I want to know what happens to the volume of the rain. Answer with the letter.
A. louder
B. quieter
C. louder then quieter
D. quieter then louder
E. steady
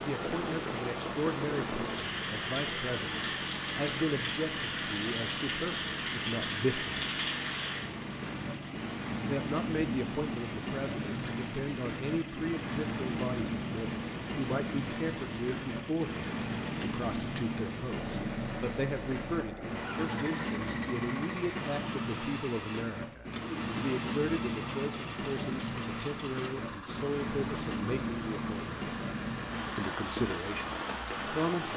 E.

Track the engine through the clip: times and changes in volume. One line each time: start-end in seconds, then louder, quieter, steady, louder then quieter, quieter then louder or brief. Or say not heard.
0.0-31.7 steady.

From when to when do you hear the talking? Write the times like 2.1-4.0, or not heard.
0.0-7.0, 9.2-28.8, 29.8-31.7.